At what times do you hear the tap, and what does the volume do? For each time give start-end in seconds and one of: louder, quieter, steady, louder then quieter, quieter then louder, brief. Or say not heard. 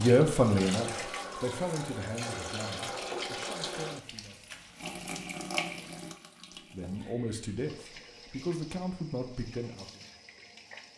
0.0-10.9 quieter.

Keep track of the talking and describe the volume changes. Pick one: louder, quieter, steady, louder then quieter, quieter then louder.
quieter then louder.